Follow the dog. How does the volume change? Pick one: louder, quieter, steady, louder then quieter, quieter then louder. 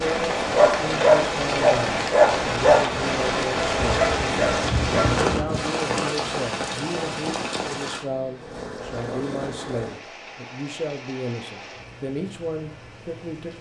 quieter.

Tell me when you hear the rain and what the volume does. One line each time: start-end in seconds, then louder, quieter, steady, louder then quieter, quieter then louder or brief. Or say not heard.
0.0-13.5 quieter.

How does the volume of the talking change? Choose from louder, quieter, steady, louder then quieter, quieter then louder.
steady.